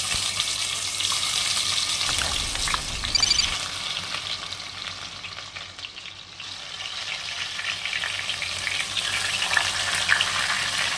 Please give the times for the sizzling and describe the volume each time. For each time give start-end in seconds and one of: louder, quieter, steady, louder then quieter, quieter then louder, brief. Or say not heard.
0.0-10.9 quieter then louder.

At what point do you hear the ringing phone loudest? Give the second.
3 s.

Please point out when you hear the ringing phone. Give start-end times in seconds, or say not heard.
2.0-3.5.